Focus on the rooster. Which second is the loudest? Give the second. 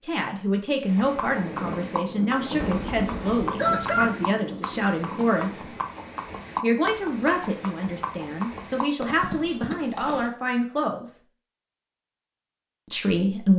4 s.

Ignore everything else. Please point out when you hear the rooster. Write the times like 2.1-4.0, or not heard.
2.6-4.0.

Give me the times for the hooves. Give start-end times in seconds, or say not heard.
0.8-10.3.